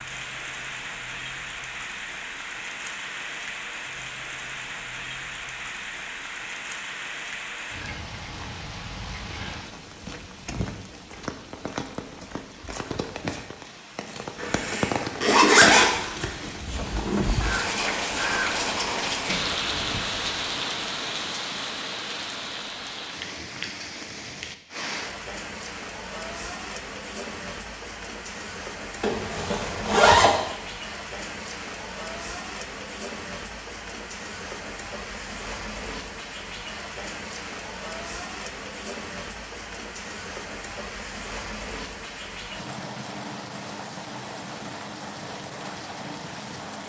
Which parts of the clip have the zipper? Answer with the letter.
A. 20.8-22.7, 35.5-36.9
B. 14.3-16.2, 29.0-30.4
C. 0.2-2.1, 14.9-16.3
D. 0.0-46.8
B.